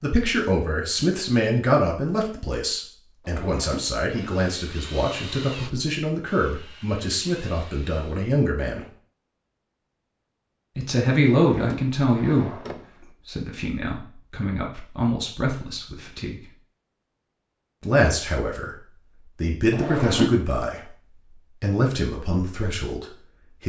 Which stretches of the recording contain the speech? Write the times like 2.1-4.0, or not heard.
0.0-8.8, 10.8-16.4, 17.8-23.6.